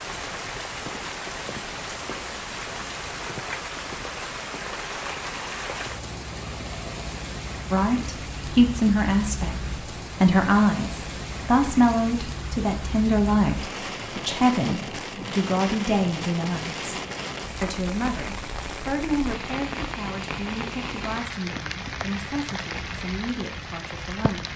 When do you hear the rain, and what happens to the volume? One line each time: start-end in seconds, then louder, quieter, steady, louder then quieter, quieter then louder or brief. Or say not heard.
0.0-24.5 steady.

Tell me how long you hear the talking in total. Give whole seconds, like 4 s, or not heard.
16 s.